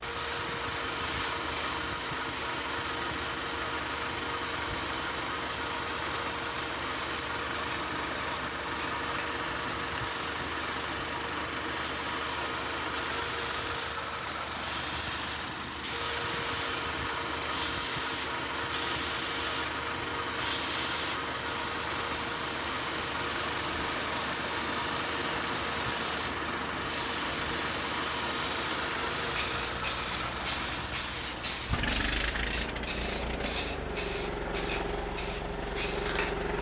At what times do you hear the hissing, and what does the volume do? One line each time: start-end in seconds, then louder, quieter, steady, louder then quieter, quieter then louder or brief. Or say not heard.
0.0-36.5 louder.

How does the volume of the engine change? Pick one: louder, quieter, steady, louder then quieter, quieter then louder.
steady.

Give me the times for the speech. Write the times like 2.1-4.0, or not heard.
not heard.